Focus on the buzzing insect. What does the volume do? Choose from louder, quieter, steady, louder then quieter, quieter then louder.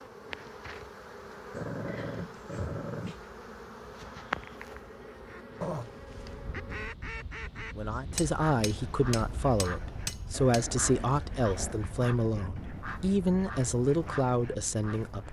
louder then quieter.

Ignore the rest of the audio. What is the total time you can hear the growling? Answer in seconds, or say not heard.
4 s.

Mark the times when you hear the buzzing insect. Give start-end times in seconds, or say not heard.
0.0-7.0.